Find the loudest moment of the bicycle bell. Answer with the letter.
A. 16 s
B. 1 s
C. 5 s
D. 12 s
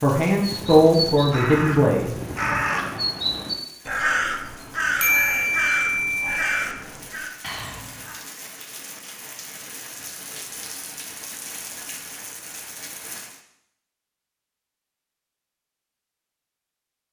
C.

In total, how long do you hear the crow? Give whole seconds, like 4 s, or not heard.
8 s.